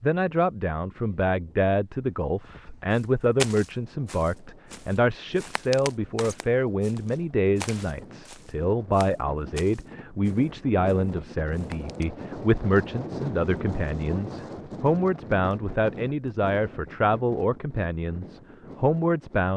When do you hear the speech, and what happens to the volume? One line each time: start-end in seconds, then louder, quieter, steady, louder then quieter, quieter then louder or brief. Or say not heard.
0.0-19.5 steady.